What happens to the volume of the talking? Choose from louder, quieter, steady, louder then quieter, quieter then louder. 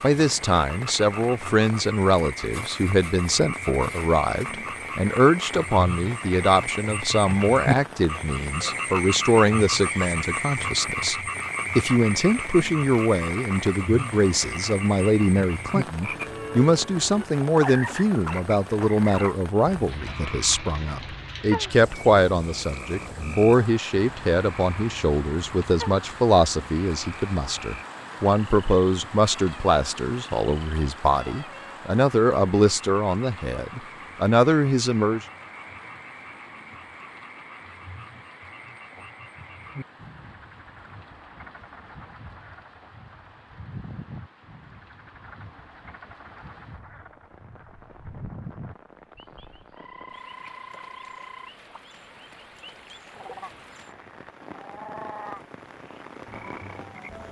steady.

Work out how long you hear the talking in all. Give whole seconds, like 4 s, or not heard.
35 s.